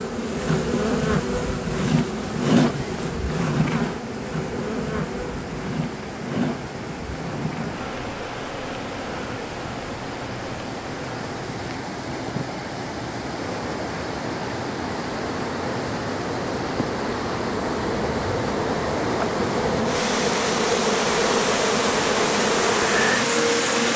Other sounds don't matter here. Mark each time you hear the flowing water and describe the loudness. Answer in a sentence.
You can hear the flowing water from 0.0 to 23.9 s, getting louder.